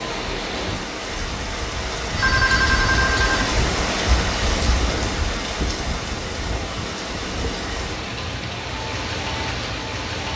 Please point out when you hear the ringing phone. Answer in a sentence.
The ringing phone can be heard from 2.1 to 3.5 s.